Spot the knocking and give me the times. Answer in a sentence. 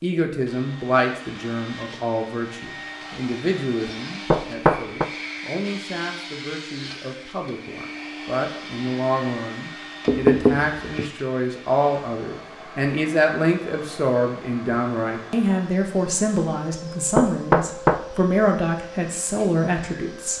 The knocking can be heard from 4.3 to 5.0 s, from 10.1 to 11.1 s and from 17.1 to 18.1 s.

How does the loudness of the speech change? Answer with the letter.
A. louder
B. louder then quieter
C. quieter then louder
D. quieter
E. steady
C.